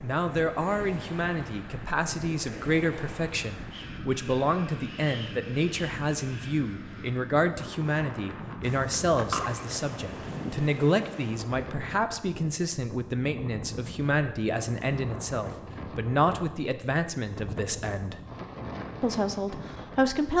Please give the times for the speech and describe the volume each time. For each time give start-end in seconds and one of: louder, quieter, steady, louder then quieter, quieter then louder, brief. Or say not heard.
0.0-18.2 steady
19.0-20.3 brief.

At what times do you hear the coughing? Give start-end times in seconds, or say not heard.
8.6-10.4.